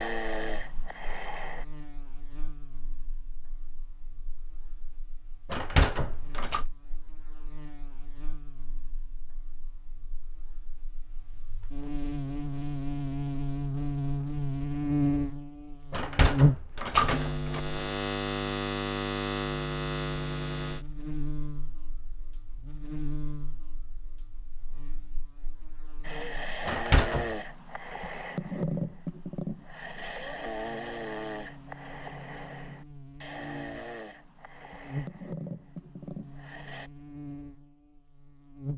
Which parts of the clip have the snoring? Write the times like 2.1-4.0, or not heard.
0.0-1.6, 26.0-36.9.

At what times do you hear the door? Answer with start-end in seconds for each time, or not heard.
5.5-6.7, 15.9-17.6, 26.6-27.4.